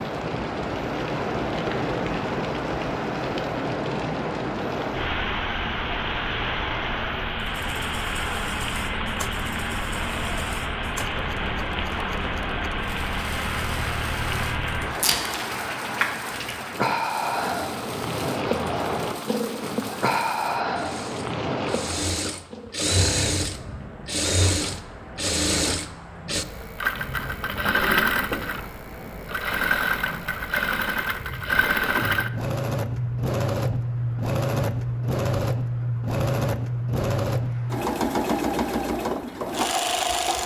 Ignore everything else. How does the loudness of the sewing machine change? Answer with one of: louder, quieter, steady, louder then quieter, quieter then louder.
louder.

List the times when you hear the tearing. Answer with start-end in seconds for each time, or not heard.
14.9-16.6.